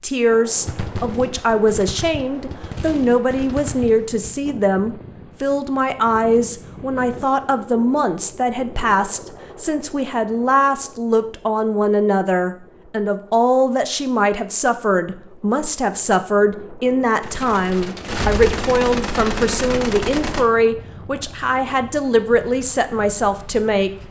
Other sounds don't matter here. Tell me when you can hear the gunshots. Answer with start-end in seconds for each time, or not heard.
0.7-4.4, 17.2-20.4.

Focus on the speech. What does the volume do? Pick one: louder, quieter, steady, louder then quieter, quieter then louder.
steady.